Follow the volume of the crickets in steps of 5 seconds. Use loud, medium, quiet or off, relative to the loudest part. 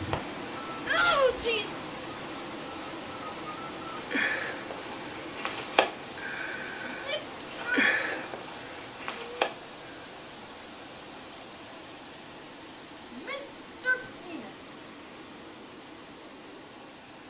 medium, loud, off, off.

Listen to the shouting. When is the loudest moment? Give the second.
1 s.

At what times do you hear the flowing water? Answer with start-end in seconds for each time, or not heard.
0.0-17.2.